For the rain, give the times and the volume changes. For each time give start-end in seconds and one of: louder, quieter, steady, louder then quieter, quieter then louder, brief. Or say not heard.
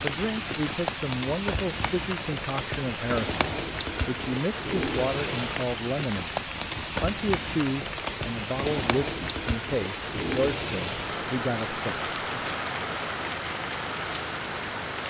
0.0-15.0 steady.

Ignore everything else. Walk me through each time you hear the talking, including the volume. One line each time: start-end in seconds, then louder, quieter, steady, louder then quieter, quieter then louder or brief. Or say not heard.
0.0-12.6 steady.